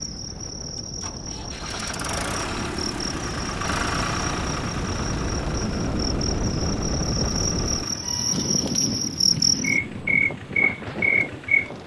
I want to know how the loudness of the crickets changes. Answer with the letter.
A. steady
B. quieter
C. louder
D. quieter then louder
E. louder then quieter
C.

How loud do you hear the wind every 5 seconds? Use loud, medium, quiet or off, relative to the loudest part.
medium, loud, medium.